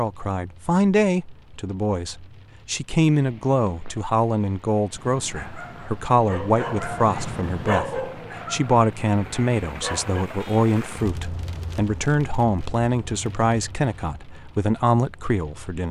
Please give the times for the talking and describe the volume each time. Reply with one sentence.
You can hear the talking from 0.0 to 15.8 s, at a steady volume.